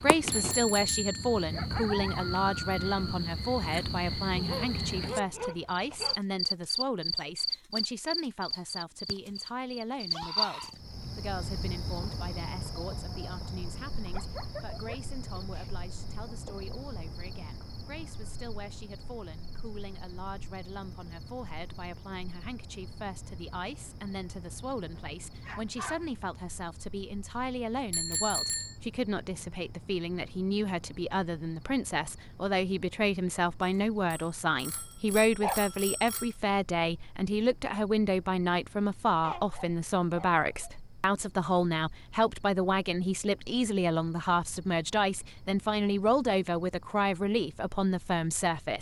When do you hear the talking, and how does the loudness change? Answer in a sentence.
The talking can be heard from 0.0 to 48.7 s, getting quieter then louder.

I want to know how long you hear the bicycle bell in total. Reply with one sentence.
You can hear the bicycle bell for 5 seconds altogether.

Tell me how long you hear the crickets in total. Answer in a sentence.
You can hear the crickets for 49 seconds altogether.